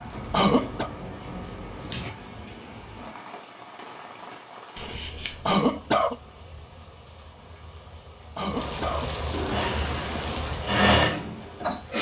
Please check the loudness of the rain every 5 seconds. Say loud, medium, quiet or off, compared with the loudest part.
medium, loud, loud.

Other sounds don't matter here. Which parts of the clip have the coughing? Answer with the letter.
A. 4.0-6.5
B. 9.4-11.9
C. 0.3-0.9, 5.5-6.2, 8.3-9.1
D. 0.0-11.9
C.